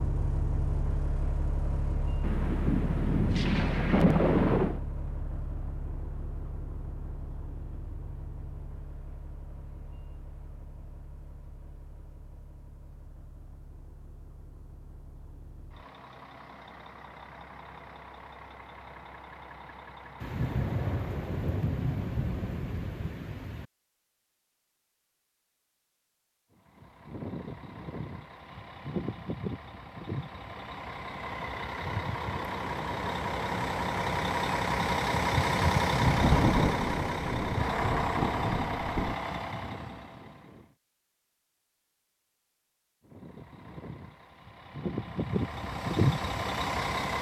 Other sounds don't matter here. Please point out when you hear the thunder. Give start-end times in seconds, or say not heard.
2.2-4.8, 20.2-23.6, 36.0-39.1.